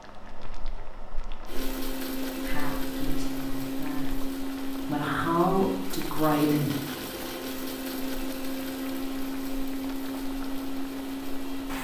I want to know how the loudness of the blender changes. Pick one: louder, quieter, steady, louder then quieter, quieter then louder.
steady.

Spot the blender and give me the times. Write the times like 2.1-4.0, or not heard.
1.4-11.8.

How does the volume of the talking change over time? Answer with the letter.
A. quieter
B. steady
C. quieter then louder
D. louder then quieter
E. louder
C.